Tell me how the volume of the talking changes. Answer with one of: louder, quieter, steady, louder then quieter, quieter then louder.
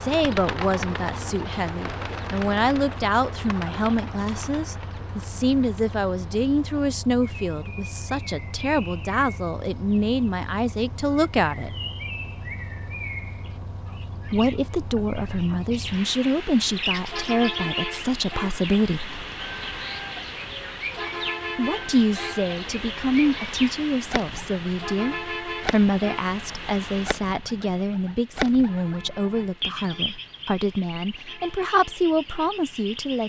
steady.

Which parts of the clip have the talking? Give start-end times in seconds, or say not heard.
0.0-11.7, 14.2-19.2, 21.6-33.2.